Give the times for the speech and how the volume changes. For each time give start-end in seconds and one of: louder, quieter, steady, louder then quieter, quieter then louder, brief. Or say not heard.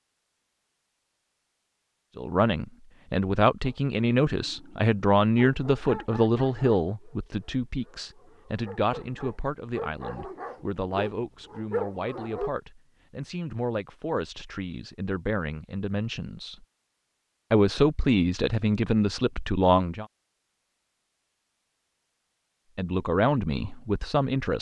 2.1-16.6 quieter
17.5-20.1 brief
22.8-24.5 brief.